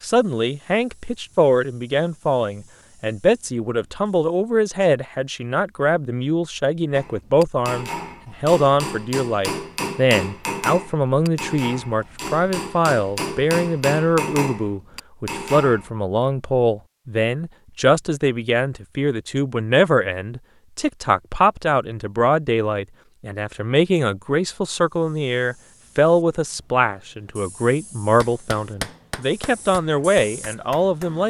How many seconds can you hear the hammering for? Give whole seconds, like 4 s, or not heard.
12 s.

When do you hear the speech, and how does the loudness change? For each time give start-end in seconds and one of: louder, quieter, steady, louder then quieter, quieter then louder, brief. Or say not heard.
0.0-31.2 steady.